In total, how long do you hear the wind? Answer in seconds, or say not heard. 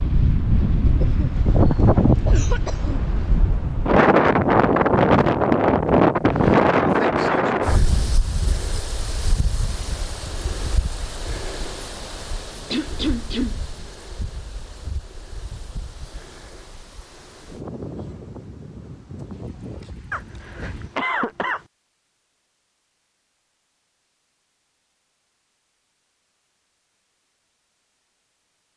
21 s.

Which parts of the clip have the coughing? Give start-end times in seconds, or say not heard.
1.0-3.0, 12.7-13.6, 20.1-21.6.